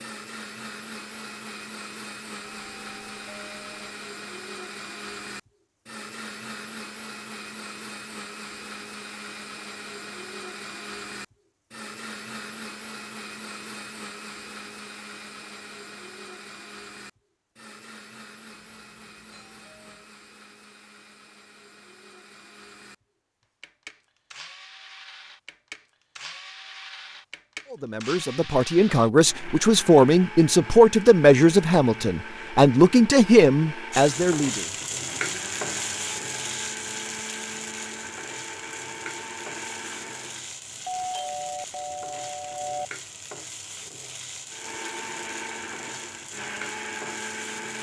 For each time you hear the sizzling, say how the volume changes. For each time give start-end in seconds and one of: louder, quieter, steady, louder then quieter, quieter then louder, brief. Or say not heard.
33.9-47.7 quieter.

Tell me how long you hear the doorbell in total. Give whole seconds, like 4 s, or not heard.
5 s.